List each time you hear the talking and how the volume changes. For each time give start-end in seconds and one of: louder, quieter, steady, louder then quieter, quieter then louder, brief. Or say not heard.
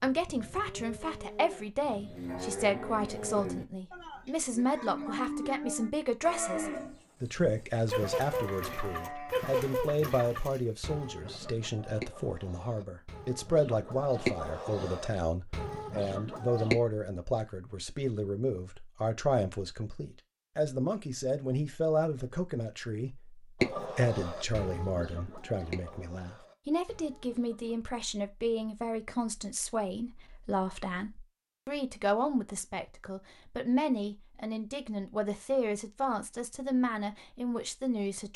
0.0-38.3 steady.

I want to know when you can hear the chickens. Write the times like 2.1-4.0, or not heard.
7.8-16.8, 23.6-27.8.